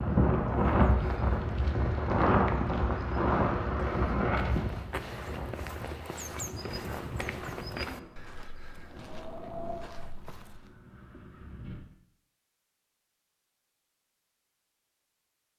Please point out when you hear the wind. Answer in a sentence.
The wind can be heard from 0.0 to 11.8 s.